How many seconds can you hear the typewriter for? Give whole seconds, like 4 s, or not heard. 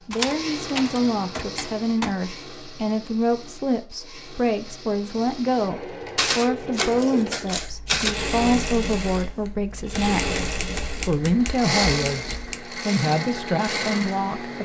7 s.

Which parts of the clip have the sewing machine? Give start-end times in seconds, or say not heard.
0.0-14.5.